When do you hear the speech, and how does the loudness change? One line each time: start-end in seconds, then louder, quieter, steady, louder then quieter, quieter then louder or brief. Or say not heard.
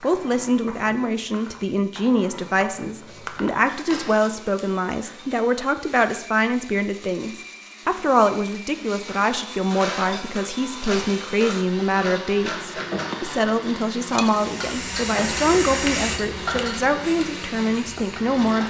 0.0-18.6 steady.